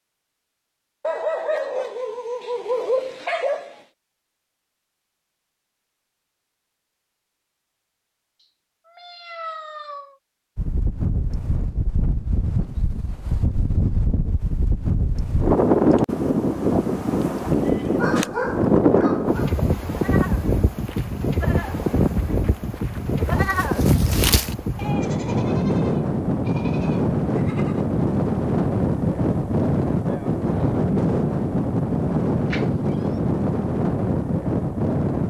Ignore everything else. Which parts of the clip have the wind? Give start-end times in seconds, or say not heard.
10.6-35.2.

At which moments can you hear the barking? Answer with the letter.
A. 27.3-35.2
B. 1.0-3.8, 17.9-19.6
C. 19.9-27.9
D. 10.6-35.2
B.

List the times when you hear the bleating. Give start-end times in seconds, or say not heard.
19.9-27.9.